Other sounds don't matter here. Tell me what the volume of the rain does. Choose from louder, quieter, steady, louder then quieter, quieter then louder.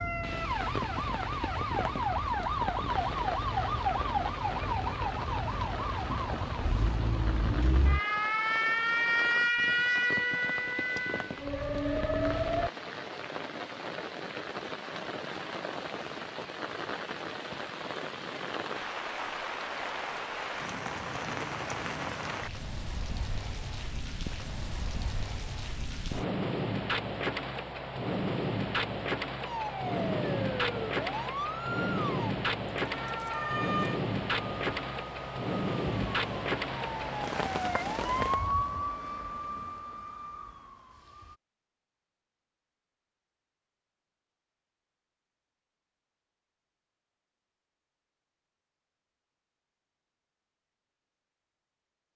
louder.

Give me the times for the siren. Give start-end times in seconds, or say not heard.
0.0-12.7, 29.4-41.4.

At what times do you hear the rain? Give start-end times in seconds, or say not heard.
0.0-38.4.